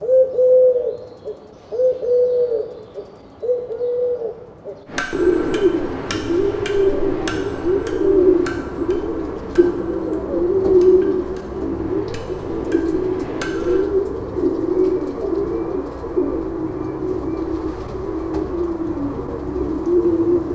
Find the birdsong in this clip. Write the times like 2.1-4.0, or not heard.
0.0-20.4.